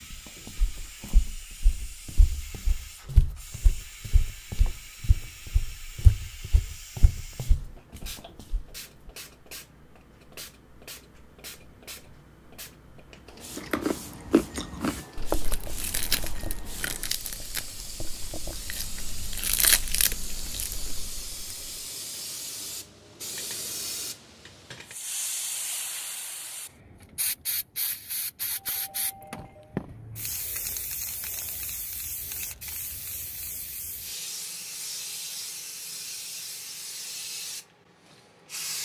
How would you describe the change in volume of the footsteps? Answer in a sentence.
The volume of the footsteps goes up.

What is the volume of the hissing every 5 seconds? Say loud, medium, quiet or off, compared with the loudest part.
medium, medium, medium, medium, loud, loud, loud, loud.